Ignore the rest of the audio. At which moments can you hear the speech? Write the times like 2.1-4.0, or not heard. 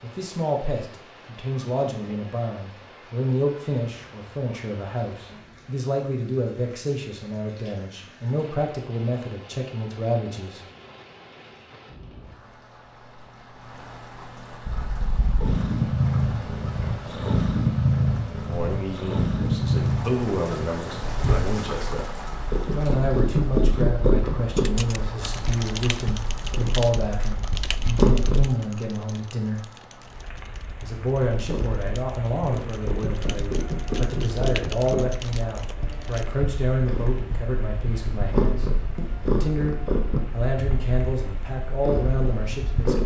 0.0-10.6, 18.5-29.6, 30.8-43.0.